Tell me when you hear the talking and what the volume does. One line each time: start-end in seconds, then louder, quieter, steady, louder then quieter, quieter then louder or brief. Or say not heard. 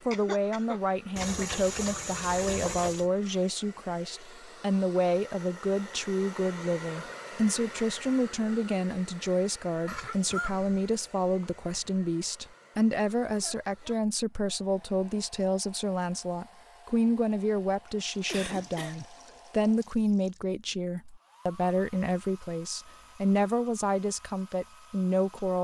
0.1-25.5 steady.